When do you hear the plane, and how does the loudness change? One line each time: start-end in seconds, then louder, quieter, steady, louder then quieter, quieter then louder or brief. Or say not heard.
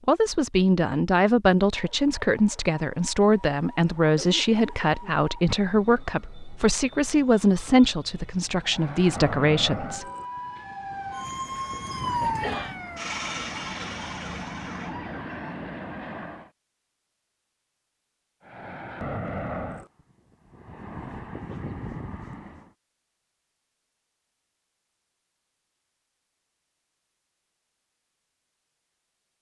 8.7-16.5 quieter then louder
18.4-22.7 quieter then louder.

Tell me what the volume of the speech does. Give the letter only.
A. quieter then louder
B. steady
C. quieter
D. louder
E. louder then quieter
B.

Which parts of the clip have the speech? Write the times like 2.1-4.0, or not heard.
0.1-10.1.